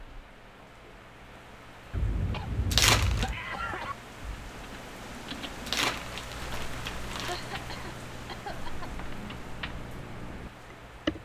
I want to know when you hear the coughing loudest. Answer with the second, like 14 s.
3 s.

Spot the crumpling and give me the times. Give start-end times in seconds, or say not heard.
2.7-3.3, 5.7-7.4.